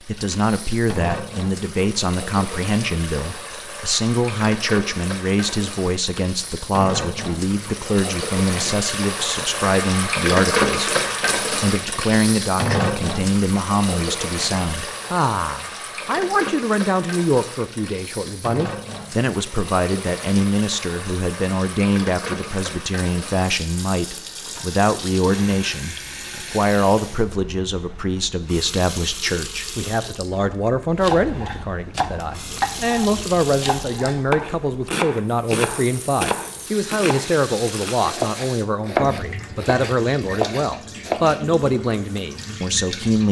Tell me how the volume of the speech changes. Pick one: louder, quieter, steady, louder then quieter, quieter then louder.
steady.